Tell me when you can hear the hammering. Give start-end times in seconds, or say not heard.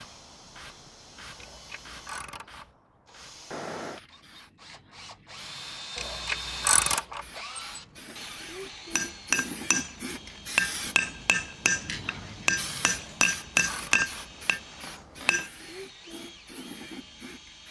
8.9-15.5.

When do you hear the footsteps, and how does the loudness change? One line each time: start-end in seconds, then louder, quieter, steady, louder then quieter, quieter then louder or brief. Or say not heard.
not heard.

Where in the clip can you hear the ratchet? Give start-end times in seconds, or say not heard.
1.4-2.6, 6.0-7.2, 12.9-14.2.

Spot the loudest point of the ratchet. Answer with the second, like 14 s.
7 s.